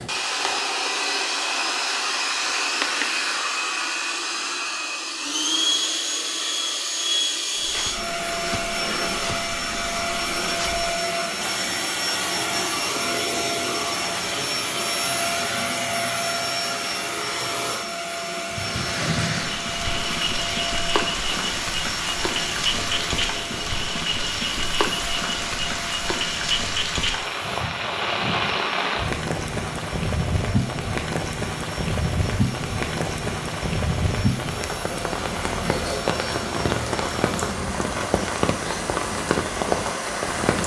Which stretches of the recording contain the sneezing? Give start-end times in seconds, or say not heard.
not heard.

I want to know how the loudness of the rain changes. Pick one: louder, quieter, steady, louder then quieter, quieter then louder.
steady.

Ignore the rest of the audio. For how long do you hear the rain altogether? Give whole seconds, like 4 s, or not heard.
22 s.